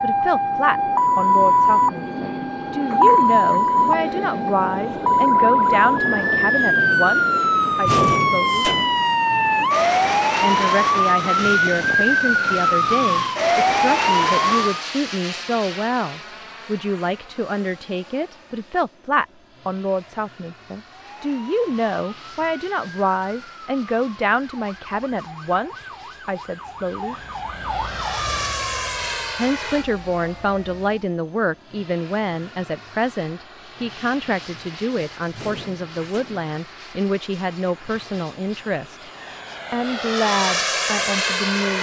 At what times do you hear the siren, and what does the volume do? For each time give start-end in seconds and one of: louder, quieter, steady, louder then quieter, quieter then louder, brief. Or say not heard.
0.0-14.8 steady
20.9-31.1 louder then quieter.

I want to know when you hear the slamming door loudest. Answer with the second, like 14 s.
8 s.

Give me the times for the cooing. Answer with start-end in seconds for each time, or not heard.
not heard.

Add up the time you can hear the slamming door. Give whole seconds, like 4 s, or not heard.
2 s.